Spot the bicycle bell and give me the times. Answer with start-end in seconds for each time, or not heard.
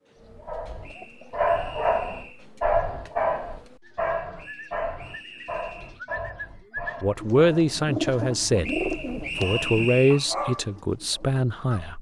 not heard.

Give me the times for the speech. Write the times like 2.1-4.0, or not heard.
7.0-8.7, 9.4-11.9.